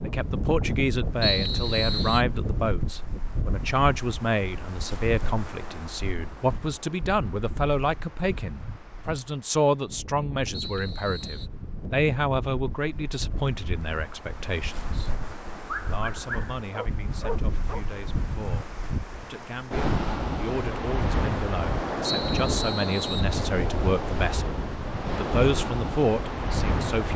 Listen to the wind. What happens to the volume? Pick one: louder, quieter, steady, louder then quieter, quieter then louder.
quieter then louder.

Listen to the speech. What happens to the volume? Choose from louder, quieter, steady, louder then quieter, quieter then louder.
quieter then louder.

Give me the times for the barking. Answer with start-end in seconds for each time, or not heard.
15.7-17.9.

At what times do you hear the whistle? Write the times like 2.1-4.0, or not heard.
1.2-2.2, 10.5-11.5, 22.0-23.4.